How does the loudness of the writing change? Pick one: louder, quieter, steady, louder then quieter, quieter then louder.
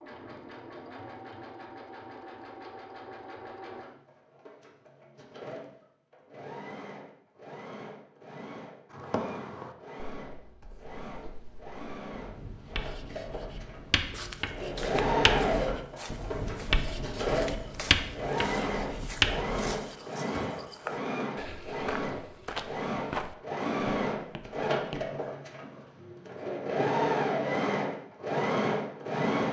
louder.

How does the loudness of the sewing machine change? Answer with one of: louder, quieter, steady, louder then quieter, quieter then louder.
louder.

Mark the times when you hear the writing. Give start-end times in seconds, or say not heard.
8.9-19.6.